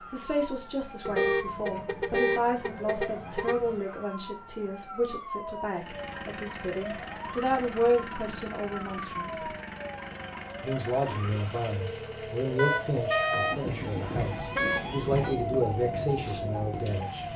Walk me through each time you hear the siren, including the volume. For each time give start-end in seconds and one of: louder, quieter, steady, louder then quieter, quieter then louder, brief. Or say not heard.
0.0-17.3 louder.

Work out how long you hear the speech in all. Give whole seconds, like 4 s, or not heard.
16 s.